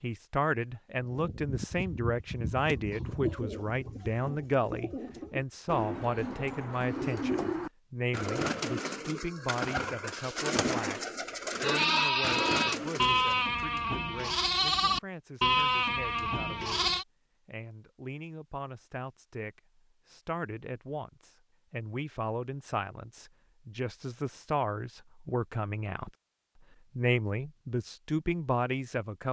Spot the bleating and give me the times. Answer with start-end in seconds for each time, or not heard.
11.6-17.1.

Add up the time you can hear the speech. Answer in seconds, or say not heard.
28 s.